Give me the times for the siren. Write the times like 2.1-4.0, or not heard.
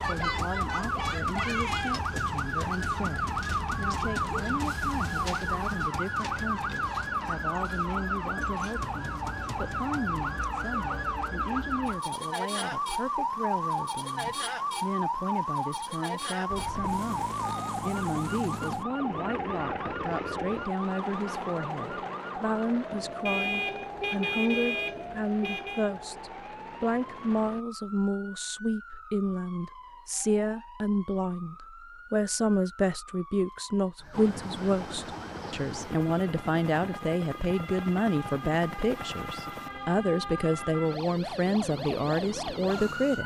0.0-43.2.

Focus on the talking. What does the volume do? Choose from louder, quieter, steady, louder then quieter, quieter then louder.
louder.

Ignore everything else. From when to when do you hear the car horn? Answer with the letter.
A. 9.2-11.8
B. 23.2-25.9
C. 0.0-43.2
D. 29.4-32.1
B.